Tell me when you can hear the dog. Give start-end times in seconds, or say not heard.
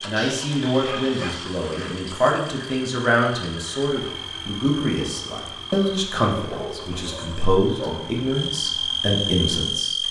0.1-1.9, 6.5-8.2.